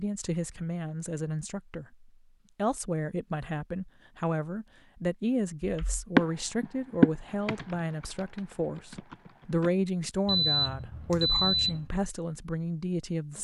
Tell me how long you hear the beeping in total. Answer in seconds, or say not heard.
2 s.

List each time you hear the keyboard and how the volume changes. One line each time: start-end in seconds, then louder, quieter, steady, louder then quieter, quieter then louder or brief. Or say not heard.
5.6-9.7 quieter then louder.